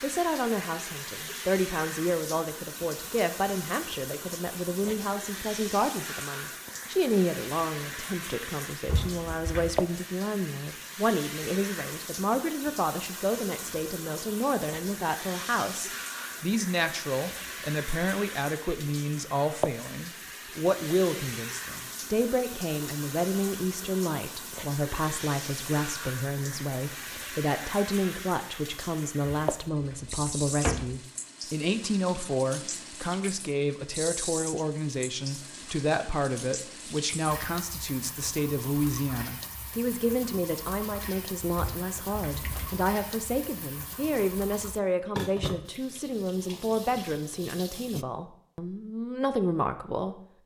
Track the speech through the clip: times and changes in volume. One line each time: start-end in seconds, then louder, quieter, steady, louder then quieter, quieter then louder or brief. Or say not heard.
0.0-50.2 steady.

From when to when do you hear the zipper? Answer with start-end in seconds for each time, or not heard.
not heard.